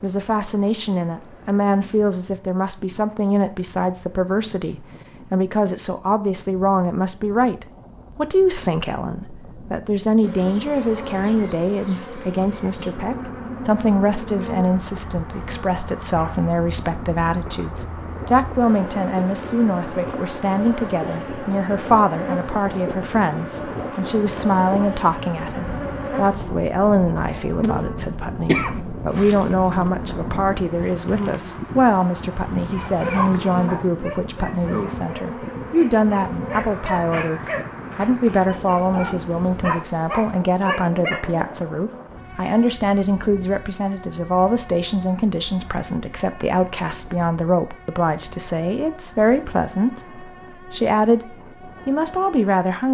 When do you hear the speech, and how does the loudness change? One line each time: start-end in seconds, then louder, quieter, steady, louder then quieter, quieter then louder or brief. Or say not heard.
0.0-52.8 steady.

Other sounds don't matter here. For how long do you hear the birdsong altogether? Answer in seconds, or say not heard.
not heard.